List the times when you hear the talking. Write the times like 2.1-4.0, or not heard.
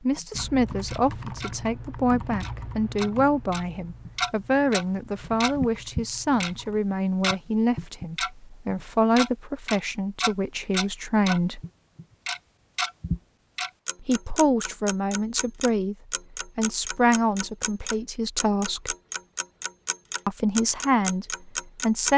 0.0-11.6, 14.0-15.9, 16.6-18.9, 20.2-22.1.